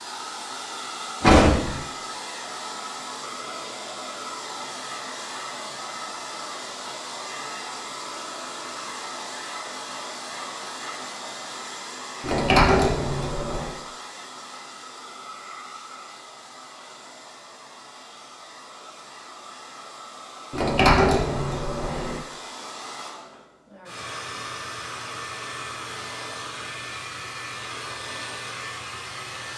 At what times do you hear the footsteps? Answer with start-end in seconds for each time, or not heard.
not heard.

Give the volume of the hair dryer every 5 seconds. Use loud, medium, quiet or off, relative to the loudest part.
loud, loud, loud, medium, loud, loud.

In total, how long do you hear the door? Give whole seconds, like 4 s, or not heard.
4 s.